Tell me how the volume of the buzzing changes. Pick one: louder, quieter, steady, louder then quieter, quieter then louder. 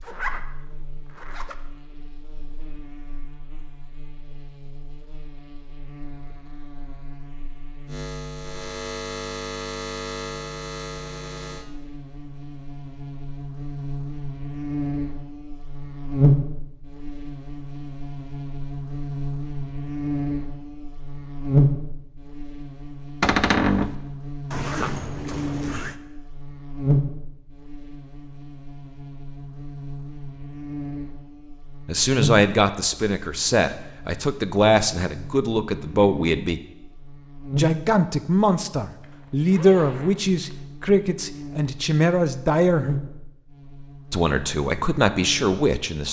louder then quieter.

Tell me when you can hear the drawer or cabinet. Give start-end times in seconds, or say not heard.
23.2-23.9.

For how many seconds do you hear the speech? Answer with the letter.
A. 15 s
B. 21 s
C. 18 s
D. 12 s
D.